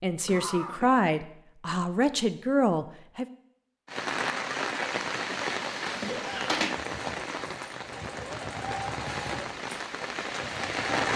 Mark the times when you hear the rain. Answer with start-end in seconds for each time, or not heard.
3.9-11.1.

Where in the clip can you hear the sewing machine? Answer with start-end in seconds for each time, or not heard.
5.8-11.1.